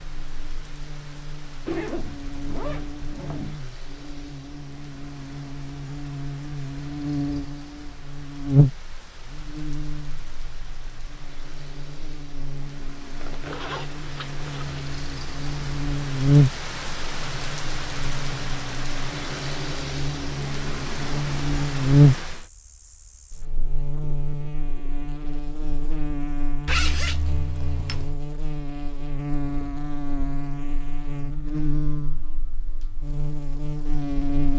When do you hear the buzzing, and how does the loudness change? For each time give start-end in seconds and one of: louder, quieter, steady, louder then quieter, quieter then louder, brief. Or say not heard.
0.0-34.5 louder then quieter.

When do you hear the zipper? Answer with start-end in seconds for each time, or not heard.
1.6-3.5, 13.2-14.8, 26.6-28.2.